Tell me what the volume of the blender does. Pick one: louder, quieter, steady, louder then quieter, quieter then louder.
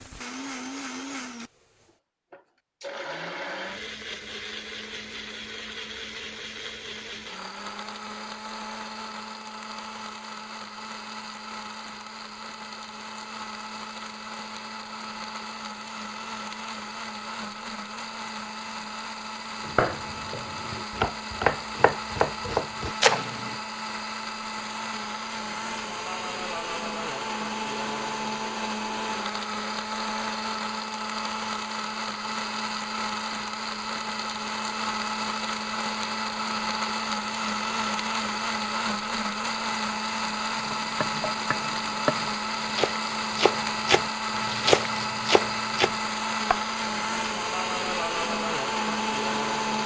louder.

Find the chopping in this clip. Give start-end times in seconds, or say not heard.
19.6-23.6, 40.5-46.6.